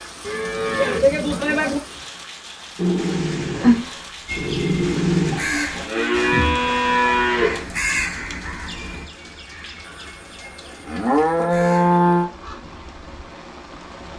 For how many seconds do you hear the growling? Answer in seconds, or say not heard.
3 s.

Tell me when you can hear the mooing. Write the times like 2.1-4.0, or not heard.
0.2-1.8, 5.3-7.7, 9.8-12.3.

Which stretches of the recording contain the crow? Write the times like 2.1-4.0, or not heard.
4.2-12.6.